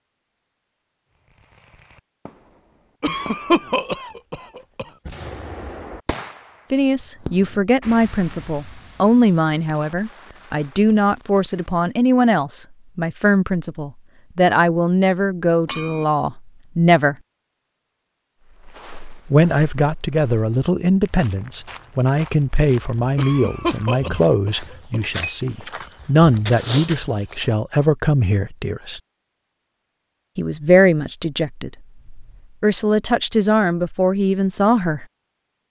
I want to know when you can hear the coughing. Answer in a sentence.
The coughing can be heard from 3.0 to 4.8 s and from 23.1 to 25.0 s.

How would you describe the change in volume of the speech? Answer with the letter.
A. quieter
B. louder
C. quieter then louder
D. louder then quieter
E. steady
E.